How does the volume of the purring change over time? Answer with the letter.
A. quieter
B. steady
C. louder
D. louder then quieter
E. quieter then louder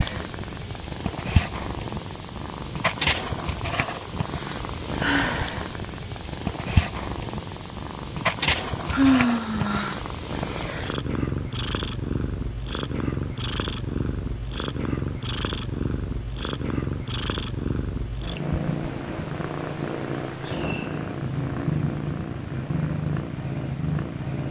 B.